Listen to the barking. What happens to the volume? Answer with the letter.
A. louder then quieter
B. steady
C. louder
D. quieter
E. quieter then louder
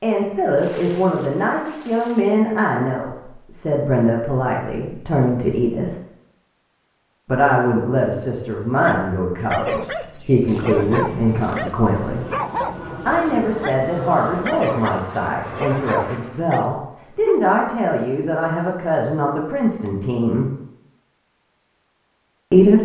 B.